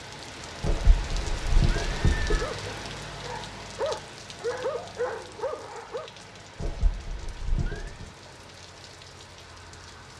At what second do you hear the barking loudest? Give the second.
5 s.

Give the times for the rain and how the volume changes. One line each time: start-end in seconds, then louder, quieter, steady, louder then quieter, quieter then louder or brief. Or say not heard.
0.0-10.1 quieter.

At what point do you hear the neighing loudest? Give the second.
2 s.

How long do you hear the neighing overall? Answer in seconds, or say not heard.
3 s.